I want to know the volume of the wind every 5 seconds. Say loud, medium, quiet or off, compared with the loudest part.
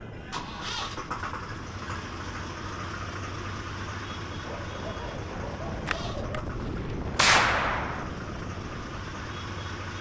medium, loud.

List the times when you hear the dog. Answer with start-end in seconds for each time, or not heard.
4.5-6.5.